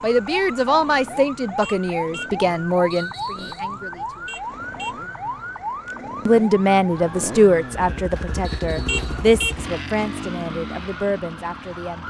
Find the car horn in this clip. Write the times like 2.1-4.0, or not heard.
1.6-2.4, 4.2-5.0, 8.8-9.6.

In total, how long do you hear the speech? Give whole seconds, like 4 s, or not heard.
10 s.